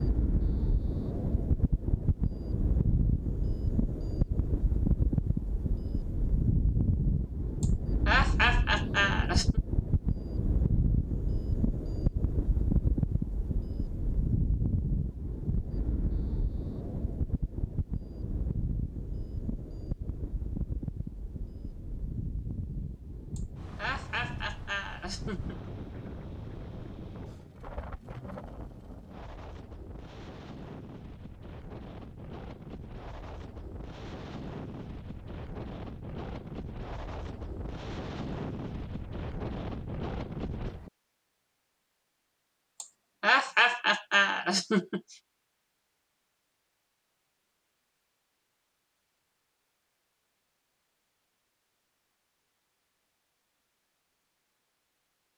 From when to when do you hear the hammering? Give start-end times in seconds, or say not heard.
not heard.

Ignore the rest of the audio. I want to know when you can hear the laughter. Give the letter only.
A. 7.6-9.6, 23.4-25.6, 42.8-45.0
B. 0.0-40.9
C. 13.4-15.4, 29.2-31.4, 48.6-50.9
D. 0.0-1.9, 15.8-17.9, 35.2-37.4
A.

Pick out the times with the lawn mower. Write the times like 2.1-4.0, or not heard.
not heard.